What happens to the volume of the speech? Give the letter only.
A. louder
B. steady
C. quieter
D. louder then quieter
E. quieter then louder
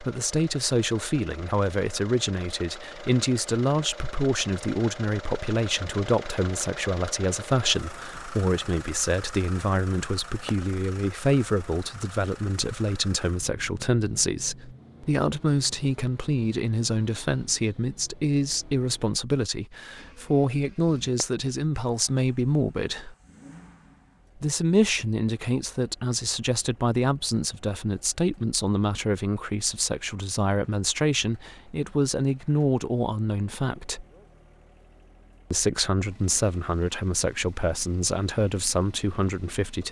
B.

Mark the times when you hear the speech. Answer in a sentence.
The speech can be heard from 0.0 to 23.1 s, from 24.4 to 34.0 s and from 35.5 to 39.8 s.